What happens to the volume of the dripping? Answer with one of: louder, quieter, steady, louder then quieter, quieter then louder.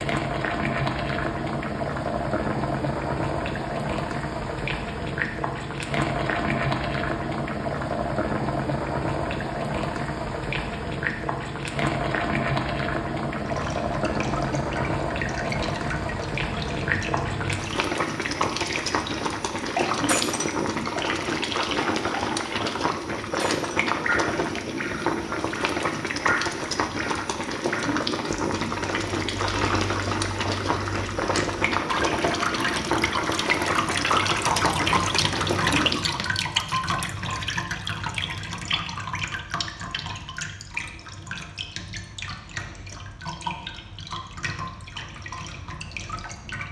louder then quieter.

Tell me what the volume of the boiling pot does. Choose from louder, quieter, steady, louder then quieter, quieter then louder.
steady.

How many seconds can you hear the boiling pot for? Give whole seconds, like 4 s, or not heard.
36 s.